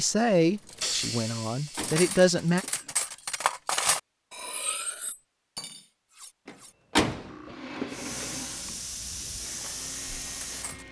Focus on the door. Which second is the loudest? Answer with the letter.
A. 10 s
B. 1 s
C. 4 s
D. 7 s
D.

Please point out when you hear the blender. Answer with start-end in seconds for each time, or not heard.
7.5-10.8.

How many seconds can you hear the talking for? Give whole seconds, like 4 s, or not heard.
3 s.